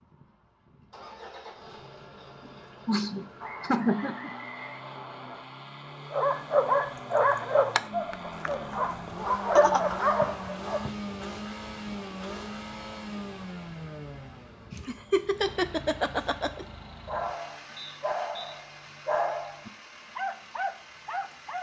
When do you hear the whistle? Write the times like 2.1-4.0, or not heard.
3.4-5.4, 10.2-10.9, 17.8-18.6.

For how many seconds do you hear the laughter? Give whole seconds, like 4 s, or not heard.
4 s.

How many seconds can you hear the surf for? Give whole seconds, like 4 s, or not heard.
not heard.